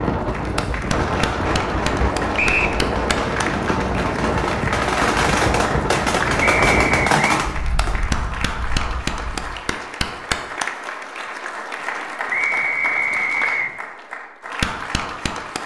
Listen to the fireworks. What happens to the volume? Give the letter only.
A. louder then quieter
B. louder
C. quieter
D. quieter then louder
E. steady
B.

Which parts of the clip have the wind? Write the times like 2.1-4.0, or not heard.
0.0-9.6.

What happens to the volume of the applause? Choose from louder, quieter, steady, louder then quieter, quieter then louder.
steady.